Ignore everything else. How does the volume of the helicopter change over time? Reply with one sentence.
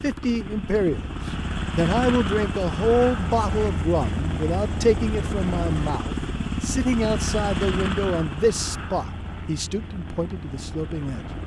The volume of the helicopter goes down.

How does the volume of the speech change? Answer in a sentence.
The loudness of the speech goes down.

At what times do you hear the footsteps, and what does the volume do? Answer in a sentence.
The footsteps can't be heard in this clip.